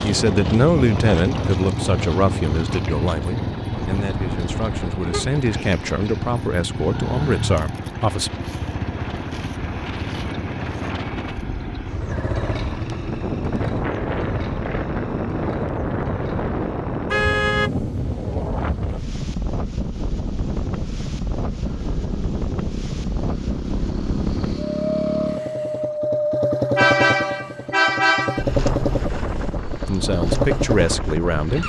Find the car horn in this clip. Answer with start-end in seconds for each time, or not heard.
3.7-5.3, 17.1-17.7, 26.8-28.4.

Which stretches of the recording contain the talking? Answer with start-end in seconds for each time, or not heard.
0.0-8.3, 29.9-31.6.